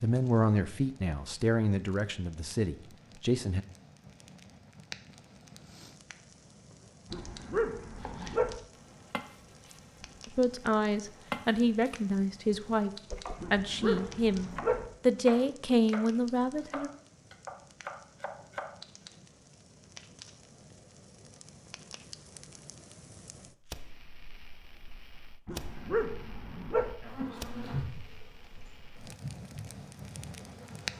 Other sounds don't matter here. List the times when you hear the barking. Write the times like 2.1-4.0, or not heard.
7.1-8.6, 13.4-14.9, 25.4-26.9.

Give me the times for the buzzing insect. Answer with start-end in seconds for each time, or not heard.
27.0-30.9.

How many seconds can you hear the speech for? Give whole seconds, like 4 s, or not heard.
10 s.